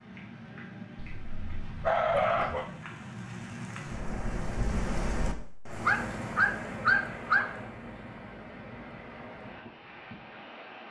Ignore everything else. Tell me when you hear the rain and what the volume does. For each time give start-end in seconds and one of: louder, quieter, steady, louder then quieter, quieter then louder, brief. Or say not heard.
0.0-10.8 louder then quieter.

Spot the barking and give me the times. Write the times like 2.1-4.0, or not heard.
1.0-2.6, 5.8-7.5.